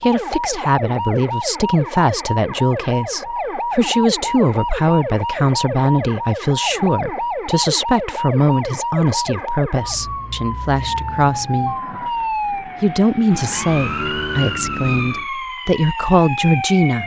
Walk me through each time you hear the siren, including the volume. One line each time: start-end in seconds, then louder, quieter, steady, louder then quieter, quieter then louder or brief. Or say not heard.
0.0-17.0 steady.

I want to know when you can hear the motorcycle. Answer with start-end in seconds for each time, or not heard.
13.4-15.3.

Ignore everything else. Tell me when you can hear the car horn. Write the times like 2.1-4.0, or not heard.
not heard.